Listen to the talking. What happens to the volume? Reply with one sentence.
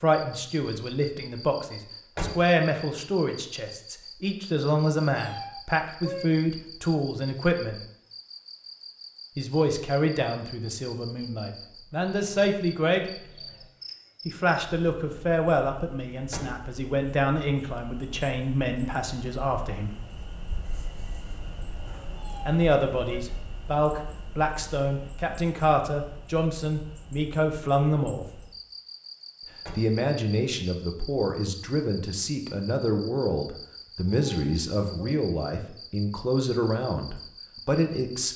The volume of the talking stays about the same.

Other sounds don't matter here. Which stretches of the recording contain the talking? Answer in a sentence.
The talking can be heard from 0.0 to 7.8 s, from 9.3 to 13.1 s, from 14.2 to 19.9 s, from 22.4 to 28.2 s and from 29.8 to 38.3 s.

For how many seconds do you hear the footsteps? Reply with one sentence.
You can't hear the footsteps here.